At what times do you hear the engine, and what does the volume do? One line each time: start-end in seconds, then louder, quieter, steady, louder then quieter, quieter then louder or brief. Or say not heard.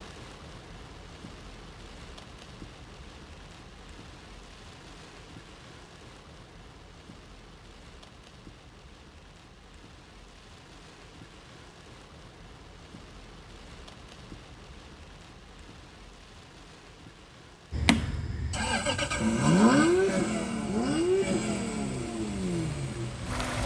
17.7-23.6 louder then quieter.